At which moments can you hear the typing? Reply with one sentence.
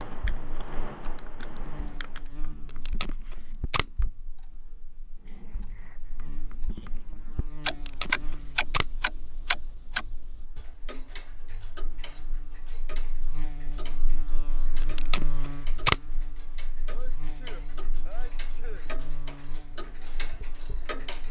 You can hear the typing from 0.0 to 2.3 s.